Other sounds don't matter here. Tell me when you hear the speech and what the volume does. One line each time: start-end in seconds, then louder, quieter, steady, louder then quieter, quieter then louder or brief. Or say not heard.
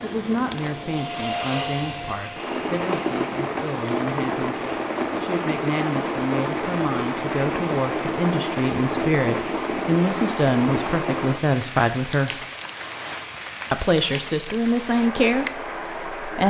0.0-12.4 louder
13.7-16.4 brief.